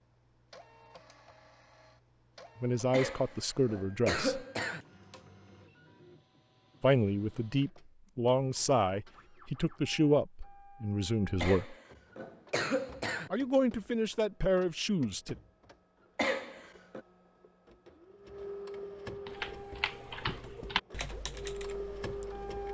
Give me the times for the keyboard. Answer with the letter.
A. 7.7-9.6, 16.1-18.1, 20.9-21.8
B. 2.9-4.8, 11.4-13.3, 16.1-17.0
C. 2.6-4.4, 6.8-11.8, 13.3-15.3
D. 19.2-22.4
D.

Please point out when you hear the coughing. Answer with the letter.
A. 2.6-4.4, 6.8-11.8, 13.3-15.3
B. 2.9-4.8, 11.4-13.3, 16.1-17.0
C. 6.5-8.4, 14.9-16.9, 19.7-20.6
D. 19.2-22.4
B.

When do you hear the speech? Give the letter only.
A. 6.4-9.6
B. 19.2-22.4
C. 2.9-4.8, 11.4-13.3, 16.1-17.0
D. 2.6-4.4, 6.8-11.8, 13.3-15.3
D.